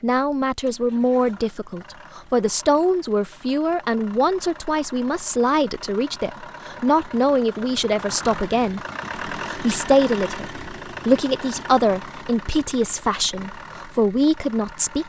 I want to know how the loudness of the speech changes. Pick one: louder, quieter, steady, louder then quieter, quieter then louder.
steady.